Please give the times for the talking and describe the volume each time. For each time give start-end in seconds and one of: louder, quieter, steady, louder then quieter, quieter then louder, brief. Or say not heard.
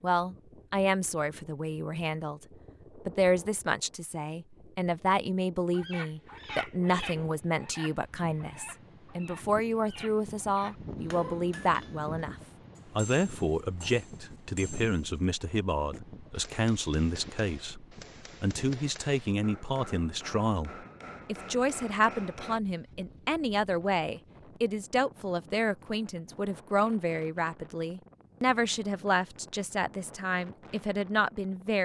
0.0-31.8 steady.